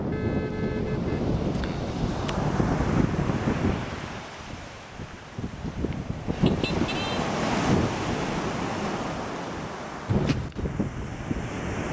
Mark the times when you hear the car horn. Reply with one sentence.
You can hear the car horn from 0.1 to 1.2 s and from 6.4 to 7.2 s.